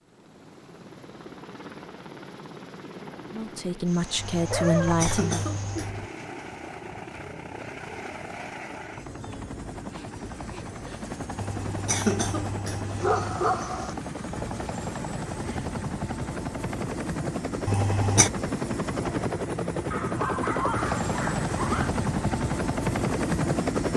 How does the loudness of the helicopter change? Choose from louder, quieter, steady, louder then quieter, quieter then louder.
louder.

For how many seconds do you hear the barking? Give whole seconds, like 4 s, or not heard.
5 s.